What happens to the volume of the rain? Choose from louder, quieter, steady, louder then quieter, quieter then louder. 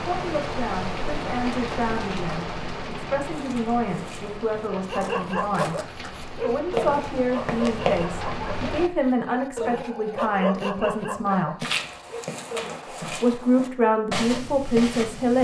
quieter then louder.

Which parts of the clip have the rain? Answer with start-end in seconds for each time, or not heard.
0.0-8.9.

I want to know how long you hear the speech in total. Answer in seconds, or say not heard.
14 s.